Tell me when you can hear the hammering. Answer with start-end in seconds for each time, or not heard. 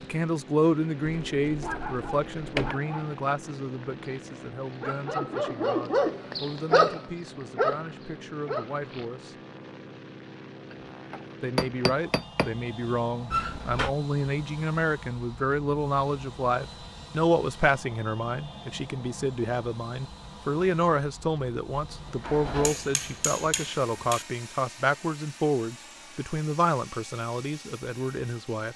10.7-12.5, 22.6-24.2.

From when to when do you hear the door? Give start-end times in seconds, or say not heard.
1.1-2.8, 13.3-13.9, 21.9-22.9.